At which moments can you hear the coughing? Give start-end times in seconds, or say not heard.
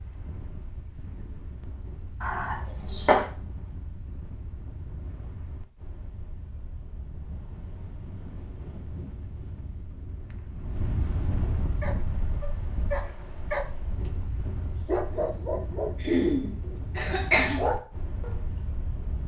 2.2-3.2, 16.0-17.6.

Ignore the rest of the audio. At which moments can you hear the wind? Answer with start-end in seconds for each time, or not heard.
0.0-19.2.